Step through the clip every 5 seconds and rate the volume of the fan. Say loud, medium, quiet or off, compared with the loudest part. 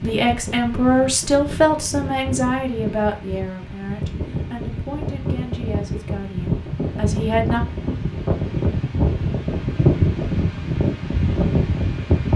medium, loud, loud.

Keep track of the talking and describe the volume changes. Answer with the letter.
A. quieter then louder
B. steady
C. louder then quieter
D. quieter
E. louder
D.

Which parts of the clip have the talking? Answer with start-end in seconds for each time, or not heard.
0.0-7.6.